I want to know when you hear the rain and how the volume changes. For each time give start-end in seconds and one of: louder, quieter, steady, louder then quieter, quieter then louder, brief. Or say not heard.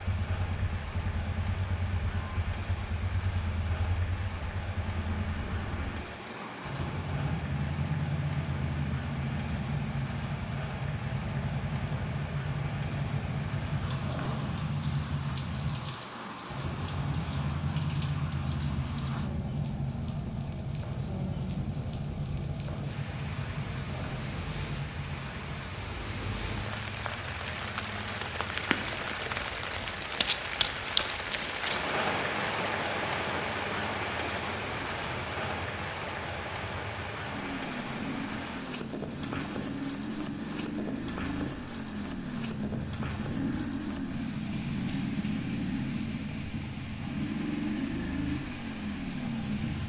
0.0-49.8 louder then quieter.